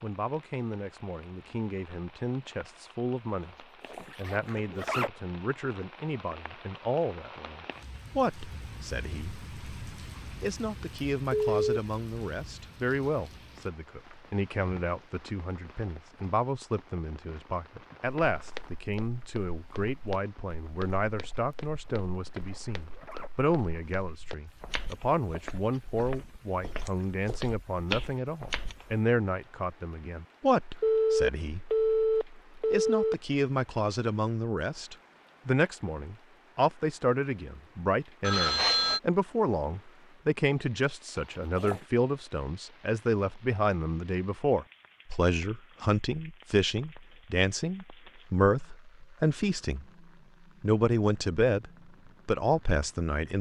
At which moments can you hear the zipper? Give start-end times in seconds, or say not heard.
3.9-5.1, 22.3-23.3, 41.1-41.9.